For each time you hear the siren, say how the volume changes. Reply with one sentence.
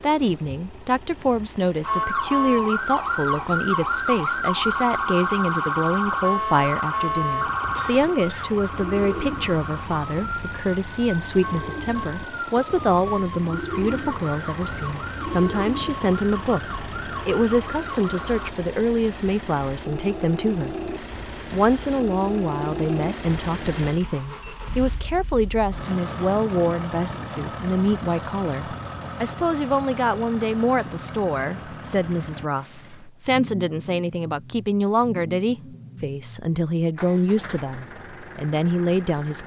The siren can be heard from 1.8 to 18.5 s, getting quieter.